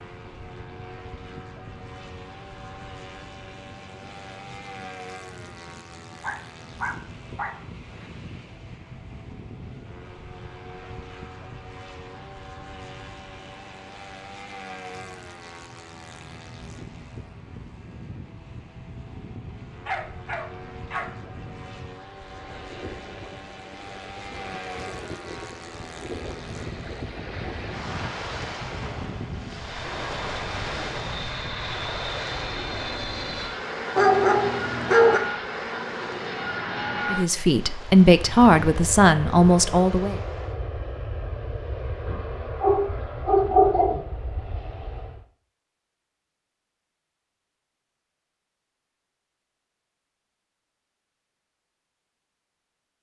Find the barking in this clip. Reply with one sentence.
The barking can be heard from 6.2 to 8.1 s, from 19.9 to 21.1 s, from 34.0 to 35.2 s and from 42.0 to 44.0 s.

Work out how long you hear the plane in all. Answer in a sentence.
You can hear the plane for 45 seconds altogether.